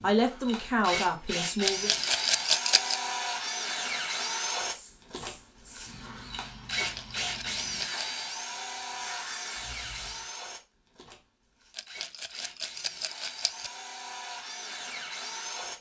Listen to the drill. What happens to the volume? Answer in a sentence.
The volume of the drill goes down.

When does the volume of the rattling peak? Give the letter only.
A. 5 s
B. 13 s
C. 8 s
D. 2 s
D.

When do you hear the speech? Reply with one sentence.
The speech can be heard from 0.0 to 1.9 s.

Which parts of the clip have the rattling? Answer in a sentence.
You can hear the rattling from 1.6 to 3.0 s, from 6.8 to 8.1 s and from 11.8 to 13.7 s.